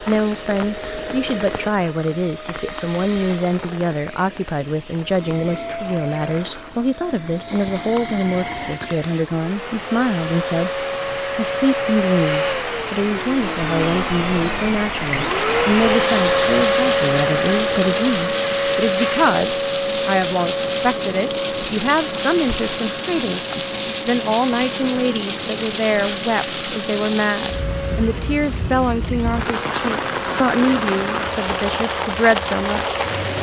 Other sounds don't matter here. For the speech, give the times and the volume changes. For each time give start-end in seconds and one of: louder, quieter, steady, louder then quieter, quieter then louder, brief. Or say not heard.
0.1-33.3 steady.